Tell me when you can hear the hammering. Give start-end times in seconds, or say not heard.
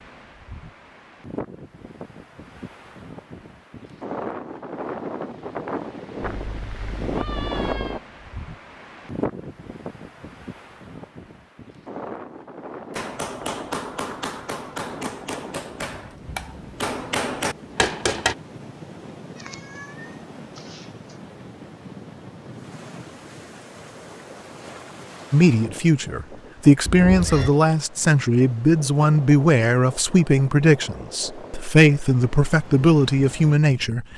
12.9-18.4.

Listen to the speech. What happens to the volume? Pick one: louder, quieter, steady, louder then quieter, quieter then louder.
steady.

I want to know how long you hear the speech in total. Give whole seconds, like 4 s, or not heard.
9 s.